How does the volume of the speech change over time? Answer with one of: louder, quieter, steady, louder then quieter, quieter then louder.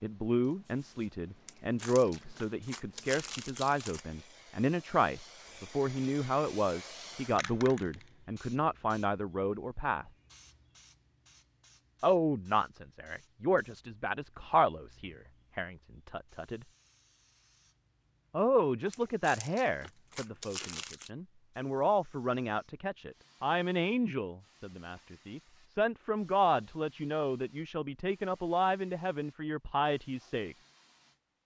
steady.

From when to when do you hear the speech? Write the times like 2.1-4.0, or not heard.
0.0-10.1, 12.0-16.6, 18.3-30.6.